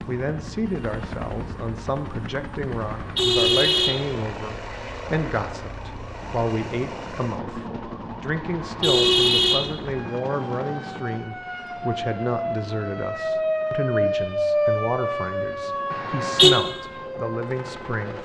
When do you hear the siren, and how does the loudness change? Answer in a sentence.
You can hear the siren from 0.0 to 18.1 s, getting louder.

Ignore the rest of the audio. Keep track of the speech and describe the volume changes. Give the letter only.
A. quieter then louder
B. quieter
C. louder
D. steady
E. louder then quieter
D.